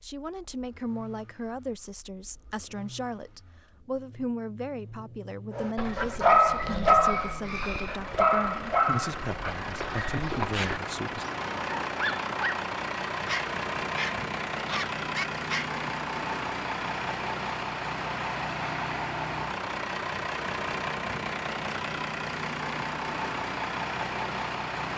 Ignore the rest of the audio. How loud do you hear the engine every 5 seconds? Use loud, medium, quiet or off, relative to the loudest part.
quiet, medium, loud, loud, loud.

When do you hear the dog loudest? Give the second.
6 s.